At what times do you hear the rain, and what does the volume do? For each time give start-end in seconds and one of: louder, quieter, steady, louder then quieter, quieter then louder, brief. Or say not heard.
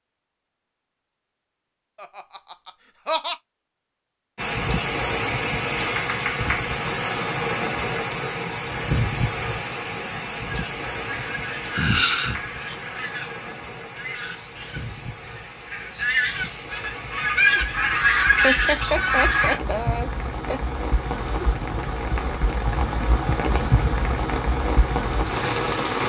4.3-26.0 quieter then louder.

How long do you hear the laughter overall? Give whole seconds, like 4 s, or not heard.
4 s.